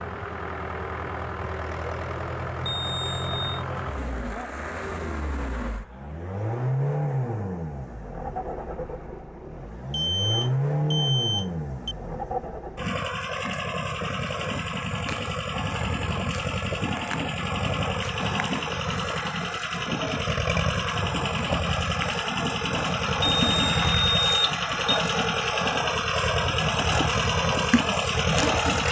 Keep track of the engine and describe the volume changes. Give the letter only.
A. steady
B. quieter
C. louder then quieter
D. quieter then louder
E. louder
E.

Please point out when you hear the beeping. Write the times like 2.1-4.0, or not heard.
2.6-3.6, 9.9-11.9, 23.4-25.0.